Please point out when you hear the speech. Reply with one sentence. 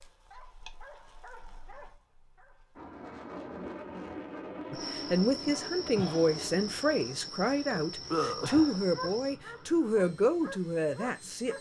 The speech can be heard from 4.7 to 11.5 s.